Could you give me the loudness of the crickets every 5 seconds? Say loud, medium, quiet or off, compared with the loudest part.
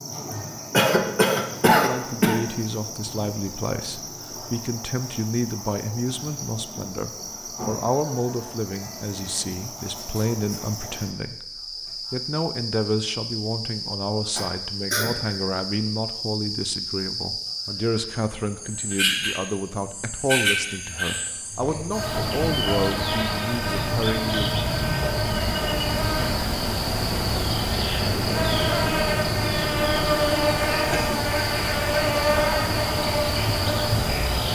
quiet, quiet, medium, medium, loud, loud, loud.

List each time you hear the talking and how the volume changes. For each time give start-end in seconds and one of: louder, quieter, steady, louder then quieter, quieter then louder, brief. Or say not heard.
1.6-11.4 steady
12.1-24.4 steady.